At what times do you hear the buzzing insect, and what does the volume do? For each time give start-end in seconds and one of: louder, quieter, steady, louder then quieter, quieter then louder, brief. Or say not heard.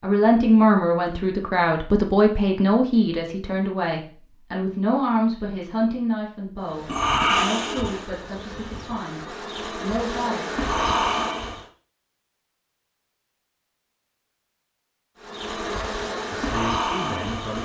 6.7-11.7 quieter then louder
15.2-17.6 brief.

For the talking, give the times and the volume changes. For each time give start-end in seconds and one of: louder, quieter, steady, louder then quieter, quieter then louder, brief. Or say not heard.
0.0-10.4 quieter
16.3-17.6 brief.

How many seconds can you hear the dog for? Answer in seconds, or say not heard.
not heard.